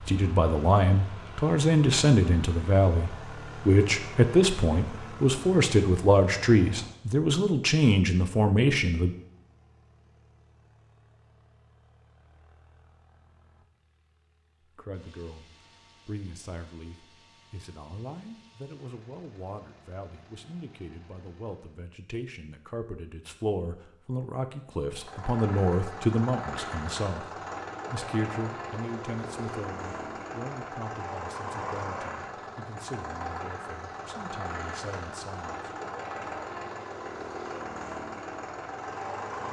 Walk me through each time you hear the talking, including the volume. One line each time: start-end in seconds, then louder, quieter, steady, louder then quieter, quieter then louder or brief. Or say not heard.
0.0-9.2 steady
14.7-35.7 louder then quieter.